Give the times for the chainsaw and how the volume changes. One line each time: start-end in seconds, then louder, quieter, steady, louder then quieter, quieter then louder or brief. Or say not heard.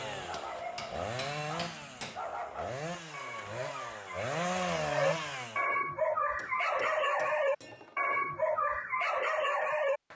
0.0-5.7 louder.